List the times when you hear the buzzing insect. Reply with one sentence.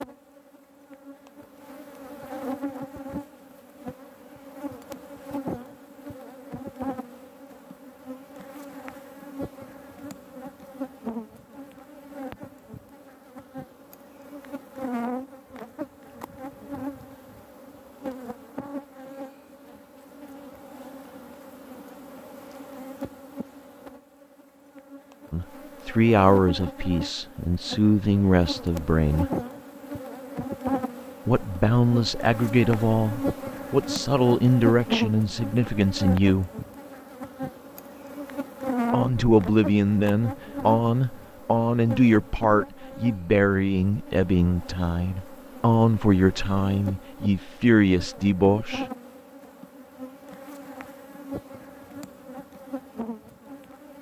The buzzing insect can be heard from 0.0 to 53.9 s.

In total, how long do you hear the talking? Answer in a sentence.
The talking can be heard for 19 seconds in total.